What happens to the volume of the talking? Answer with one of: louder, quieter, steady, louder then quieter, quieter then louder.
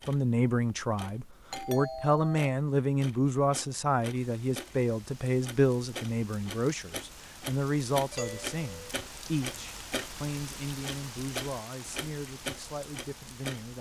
quieter.